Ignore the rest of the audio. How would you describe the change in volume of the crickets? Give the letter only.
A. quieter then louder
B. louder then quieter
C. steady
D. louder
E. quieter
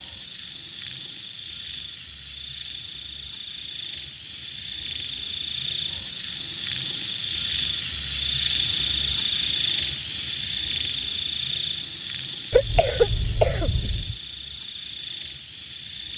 B.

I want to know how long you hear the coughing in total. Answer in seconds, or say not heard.
2 s.